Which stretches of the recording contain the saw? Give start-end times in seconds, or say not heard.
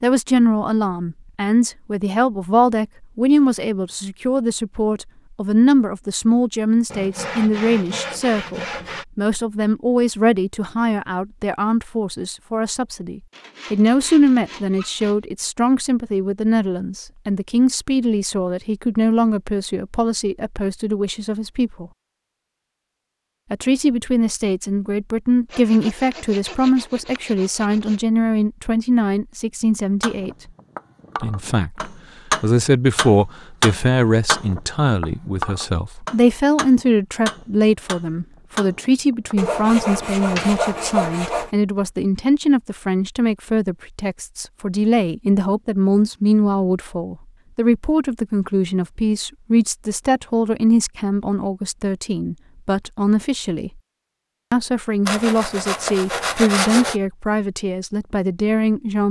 6.9-9.1, 13.3-15.2, 25.5-28.0, 39.4-41.5, 55.0-57.0.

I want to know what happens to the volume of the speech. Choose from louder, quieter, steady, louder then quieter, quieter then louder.
steady.